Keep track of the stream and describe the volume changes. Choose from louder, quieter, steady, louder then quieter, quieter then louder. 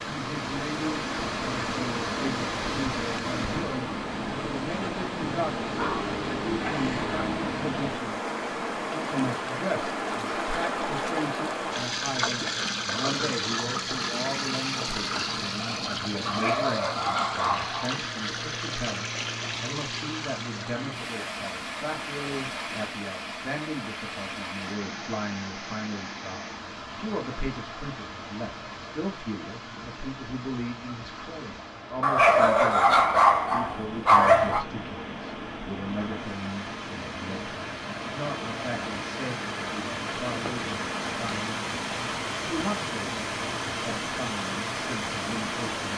quieter then louder.